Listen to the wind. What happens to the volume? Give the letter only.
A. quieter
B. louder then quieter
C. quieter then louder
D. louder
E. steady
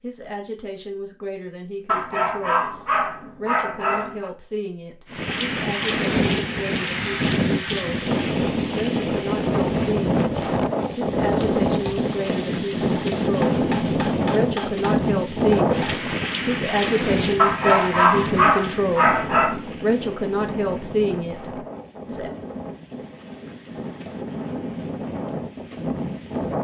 A.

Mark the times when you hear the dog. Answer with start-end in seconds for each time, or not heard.
1.9-4.3, 17.4-19.6.